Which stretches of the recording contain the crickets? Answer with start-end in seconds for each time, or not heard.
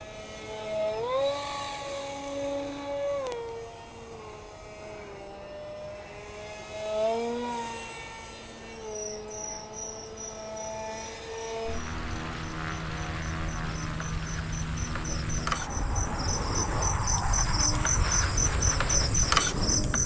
8.9-20.0.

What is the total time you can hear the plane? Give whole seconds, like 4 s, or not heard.
20 s.